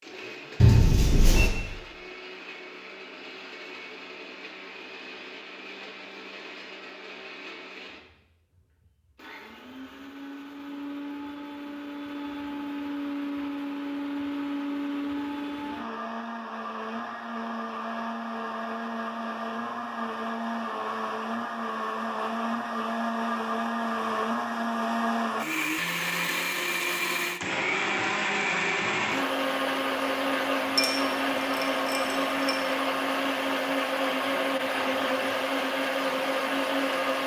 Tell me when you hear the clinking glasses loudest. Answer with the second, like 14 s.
1 s.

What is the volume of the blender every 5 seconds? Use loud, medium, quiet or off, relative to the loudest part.
quiet, quiet, medium, medium, loud, loud, loud, loud.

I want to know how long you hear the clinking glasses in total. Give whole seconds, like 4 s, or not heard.
3 s.